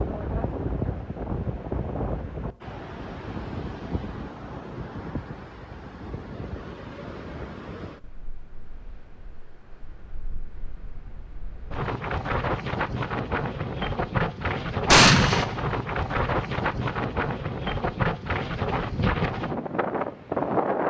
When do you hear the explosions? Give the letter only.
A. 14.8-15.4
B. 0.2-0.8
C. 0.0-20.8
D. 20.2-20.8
A.